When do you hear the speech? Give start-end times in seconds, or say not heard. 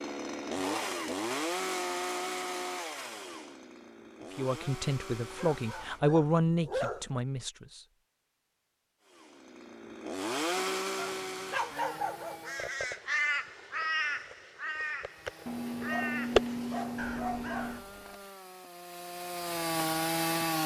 4.3-7.8.